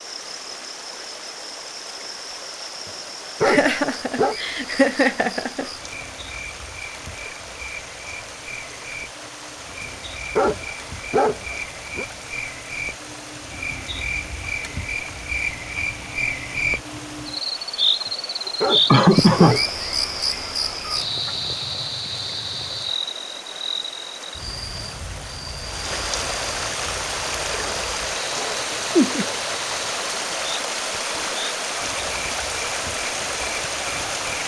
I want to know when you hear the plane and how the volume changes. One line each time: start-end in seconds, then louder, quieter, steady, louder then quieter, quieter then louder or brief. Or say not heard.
not heard.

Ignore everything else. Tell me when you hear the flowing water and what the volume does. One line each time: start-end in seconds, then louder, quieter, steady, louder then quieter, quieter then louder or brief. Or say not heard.
0.0-34.4 louder.